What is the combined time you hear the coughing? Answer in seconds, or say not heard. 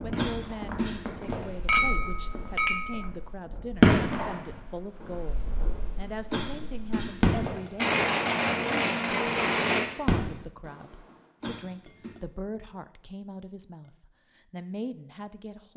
4 s.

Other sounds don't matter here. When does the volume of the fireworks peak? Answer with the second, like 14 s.
4 s.